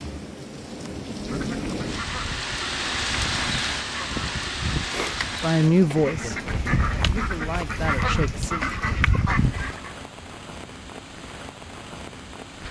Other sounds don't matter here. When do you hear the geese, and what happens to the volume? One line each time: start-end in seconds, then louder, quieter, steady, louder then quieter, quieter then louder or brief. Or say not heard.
1.1-9.9 louder.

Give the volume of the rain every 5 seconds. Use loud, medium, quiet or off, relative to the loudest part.
loud, medium, medium.